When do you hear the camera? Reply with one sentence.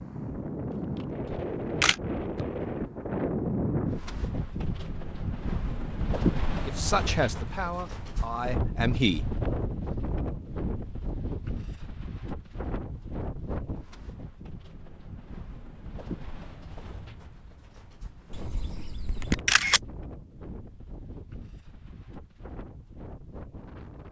You can hear the camera from 1.2 to 1.9 s and from 18.3 to 19.8 s.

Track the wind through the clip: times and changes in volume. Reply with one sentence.
You can hear the wind from 0.0 to 24.0 s, getting quieter.